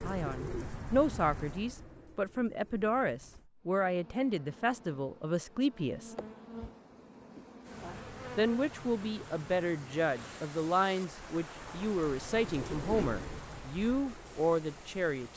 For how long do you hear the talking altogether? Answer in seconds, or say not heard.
13 s.